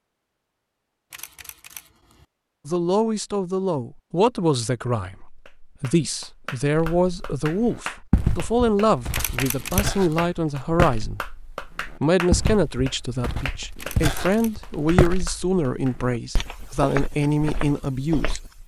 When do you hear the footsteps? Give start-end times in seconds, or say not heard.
6.8-18.6.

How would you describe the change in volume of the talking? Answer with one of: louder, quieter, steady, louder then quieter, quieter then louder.
steady.